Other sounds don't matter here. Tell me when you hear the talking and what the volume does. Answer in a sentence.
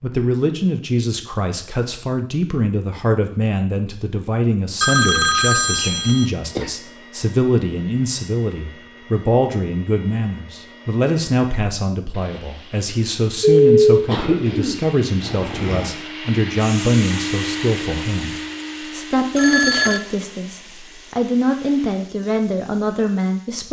You can hear the talking from 0.0 to 23.6 s, at a steady volume.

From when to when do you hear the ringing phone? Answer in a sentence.
The ringing phone can be heard from 4.8 to 6.2 s, from 13.4 to 13.8 s and from 19.4 to 20.0 s.